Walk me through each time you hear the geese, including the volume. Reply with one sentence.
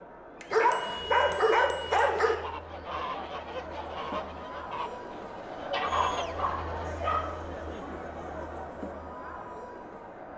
You can hear the geese from 1.9 to 6.8 s, getting quieter then louder.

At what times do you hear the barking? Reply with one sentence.
The barking can be heard from 0.5 to 2.4 s and from 5.9 to 7.3 s.